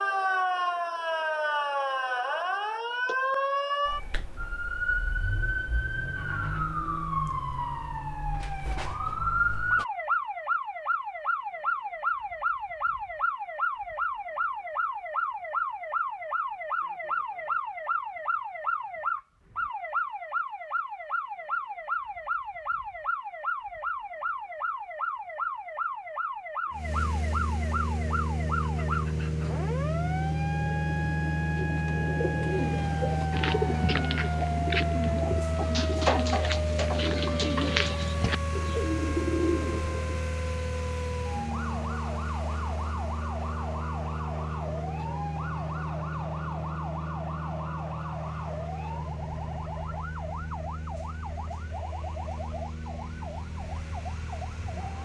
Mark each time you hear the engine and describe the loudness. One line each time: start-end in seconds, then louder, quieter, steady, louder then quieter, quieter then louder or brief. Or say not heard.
26.7-54.9 quieter.